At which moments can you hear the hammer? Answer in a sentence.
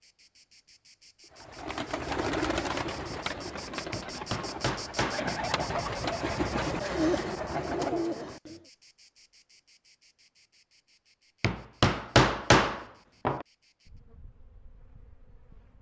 The hammer can be heard from 3.9 to 5.9 s and from 11.4 to 13.4 s.